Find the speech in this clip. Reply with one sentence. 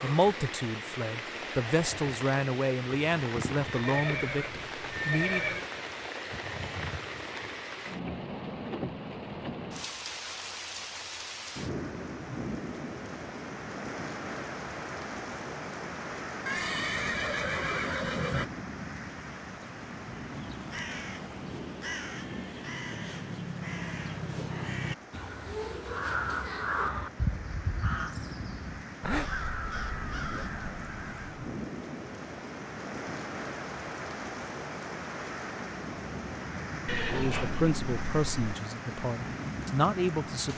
The speech can be heard from 0.0 to 5.6 s and from 37.0 to 40.5 s.